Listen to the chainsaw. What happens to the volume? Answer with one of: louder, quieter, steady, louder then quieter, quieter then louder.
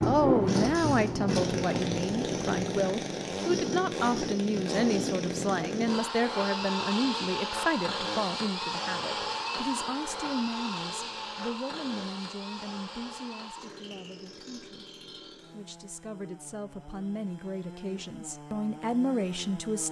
quieter.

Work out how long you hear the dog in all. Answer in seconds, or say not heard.
not heard.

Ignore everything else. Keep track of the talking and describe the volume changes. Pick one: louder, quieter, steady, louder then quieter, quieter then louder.
quieter then louder.